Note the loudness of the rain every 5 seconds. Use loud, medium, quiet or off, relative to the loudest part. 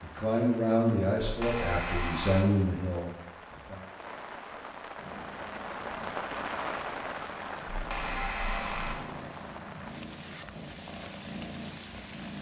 medium, loud, medium.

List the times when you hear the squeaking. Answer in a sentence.
You can hear the squeaking from 1.2 to 2.5 s and from 7.7 to 9.1 s.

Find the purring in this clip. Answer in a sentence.
The purring can be heard from 5.0 to 12.3 s.